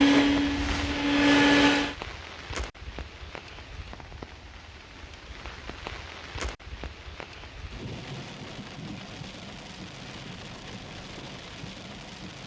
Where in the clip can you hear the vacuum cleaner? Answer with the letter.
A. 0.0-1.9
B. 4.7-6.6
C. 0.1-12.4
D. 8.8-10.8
A.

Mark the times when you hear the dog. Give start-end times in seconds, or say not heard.
not heard.